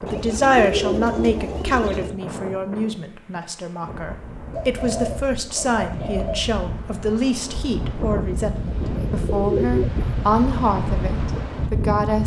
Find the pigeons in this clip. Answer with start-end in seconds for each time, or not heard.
0.1-2.1, 4.5-6.5, 8.8-10.4.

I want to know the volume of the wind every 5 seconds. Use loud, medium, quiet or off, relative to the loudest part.
medium, loud, loud.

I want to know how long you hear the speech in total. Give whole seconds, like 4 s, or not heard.
12 s.